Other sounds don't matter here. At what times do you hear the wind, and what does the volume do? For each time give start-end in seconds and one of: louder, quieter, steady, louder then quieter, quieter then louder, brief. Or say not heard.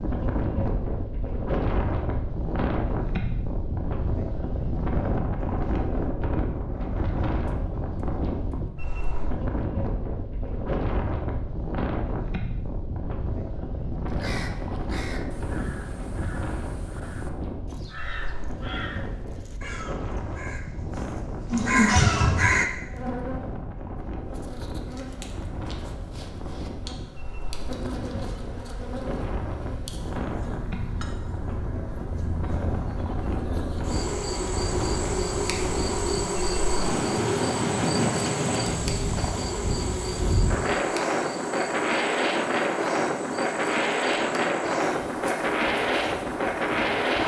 0.0-47.2 quieter then louder.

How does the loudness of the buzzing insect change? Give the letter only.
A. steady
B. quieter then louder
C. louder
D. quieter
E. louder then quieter
E.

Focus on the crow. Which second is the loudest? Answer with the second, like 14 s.
22 s.